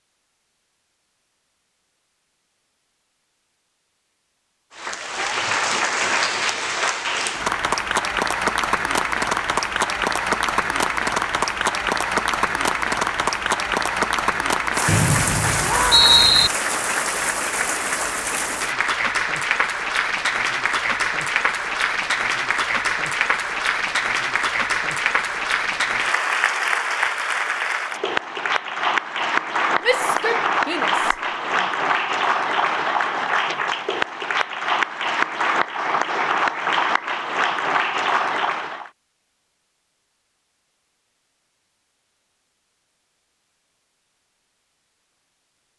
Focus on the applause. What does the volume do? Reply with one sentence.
The volume of the applause stays about the same.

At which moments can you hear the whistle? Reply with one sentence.
The whistle can be heard from 14.8 to 16.5 s.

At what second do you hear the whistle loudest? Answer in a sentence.
The loudest moment of the whistle is at 16 seconds.